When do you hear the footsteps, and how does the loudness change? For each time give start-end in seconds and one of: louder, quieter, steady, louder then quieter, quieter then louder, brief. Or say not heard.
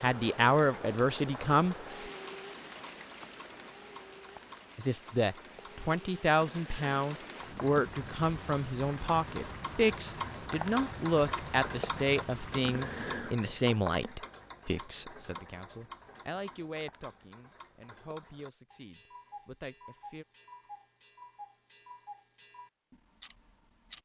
not heard.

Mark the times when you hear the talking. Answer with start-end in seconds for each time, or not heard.
0.0-1.8, 4.8-20.2.